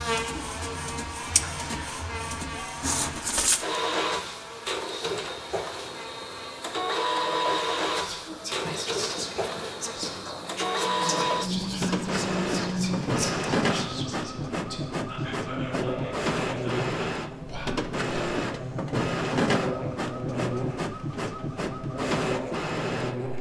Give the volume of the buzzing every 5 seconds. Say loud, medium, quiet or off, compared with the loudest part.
loud, medium, loud, loud, loud.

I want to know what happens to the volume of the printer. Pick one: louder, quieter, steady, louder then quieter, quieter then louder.
steady.